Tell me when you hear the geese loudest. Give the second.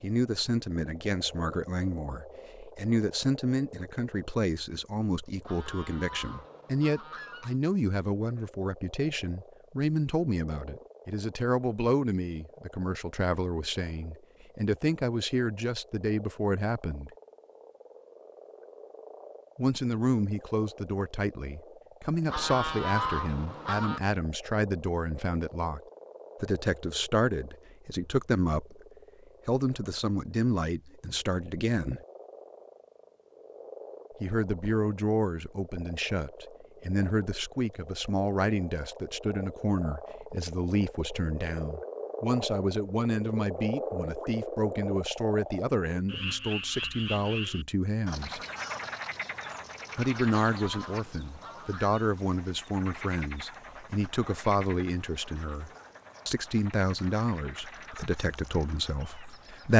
23 s.